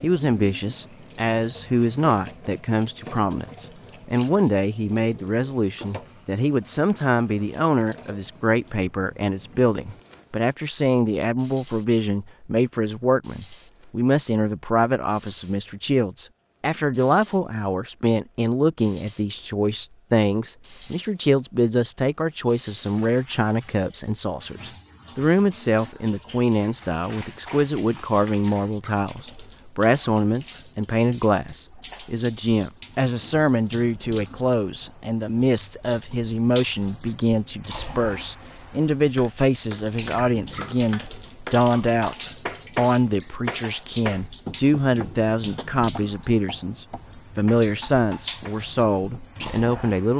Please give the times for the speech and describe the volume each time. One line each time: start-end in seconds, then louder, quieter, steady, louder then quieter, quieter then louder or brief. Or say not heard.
0.0-50.1 steady.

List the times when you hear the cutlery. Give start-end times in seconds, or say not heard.
not heard.